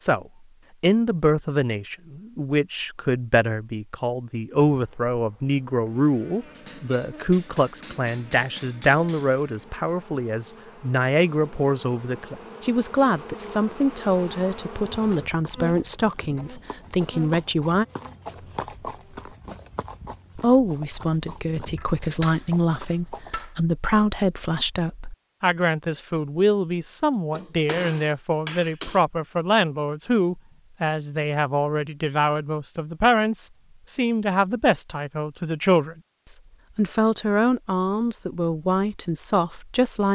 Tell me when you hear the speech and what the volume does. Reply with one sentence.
The speech can be heard from 0.0 to 17.9 s, at a steady volume; and from 20.4 to 40.1 s, at a steady volume.